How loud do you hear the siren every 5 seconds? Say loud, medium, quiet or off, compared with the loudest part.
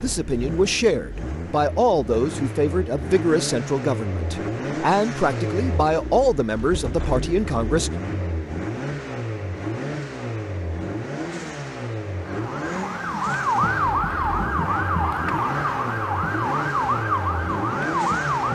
off, off, loud, loud.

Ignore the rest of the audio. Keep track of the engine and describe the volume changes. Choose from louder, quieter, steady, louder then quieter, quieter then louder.
steady.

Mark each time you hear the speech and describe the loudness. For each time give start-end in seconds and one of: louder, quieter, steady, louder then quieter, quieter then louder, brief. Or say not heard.
0.0-7.9 steady.